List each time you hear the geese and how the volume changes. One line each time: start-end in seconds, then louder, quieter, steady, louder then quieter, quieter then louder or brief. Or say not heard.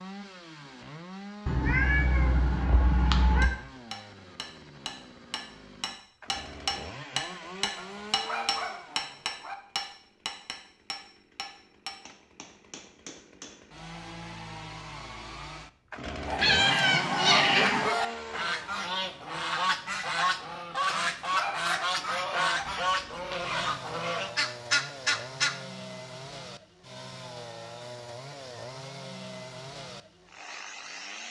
16.2-25.6 steady.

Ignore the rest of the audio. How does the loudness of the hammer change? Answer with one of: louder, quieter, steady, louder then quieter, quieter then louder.
louder then quieter.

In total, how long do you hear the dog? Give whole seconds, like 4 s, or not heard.
3 s.